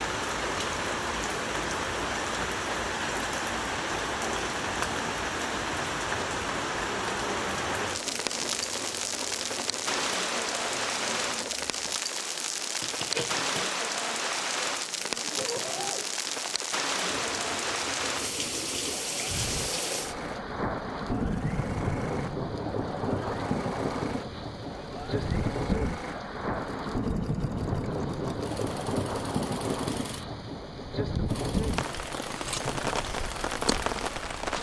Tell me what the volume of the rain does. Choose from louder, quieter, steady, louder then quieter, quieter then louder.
steady.